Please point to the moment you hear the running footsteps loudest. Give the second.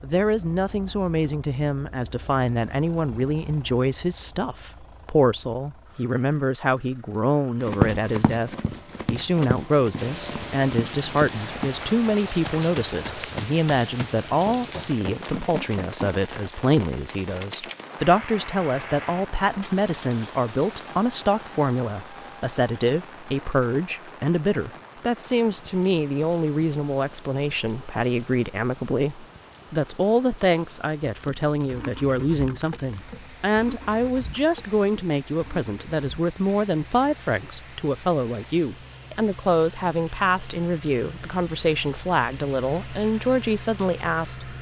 8 s.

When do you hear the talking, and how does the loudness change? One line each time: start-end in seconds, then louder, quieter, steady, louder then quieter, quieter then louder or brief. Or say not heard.
0.0-44.5 steady.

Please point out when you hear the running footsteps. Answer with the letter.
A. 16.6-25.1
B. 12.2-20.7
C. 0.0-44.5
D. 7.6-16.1
D.